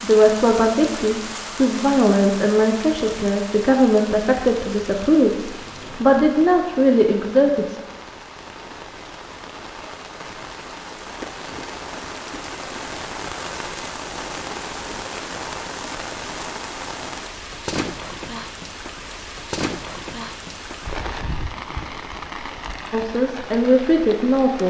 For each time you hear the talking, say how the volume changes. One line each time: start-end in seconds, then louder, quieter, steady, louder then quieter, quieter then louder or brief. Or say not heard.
0.0-7.8 steady
22.9-24.6 brief.